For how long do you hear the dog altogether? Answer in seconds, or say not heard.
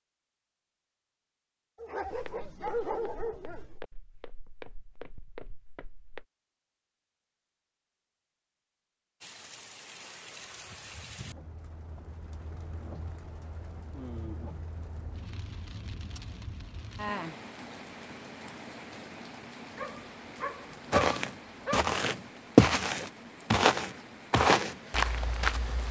4 s.